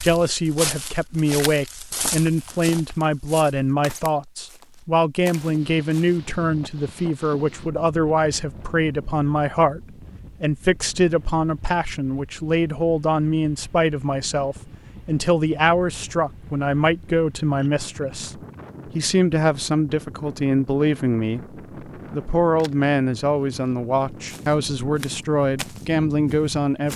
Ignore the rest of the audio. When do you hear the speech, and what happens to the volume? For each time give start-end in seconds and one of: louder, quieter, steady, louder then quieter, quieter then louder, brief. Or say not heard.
0.0-26.9 steady.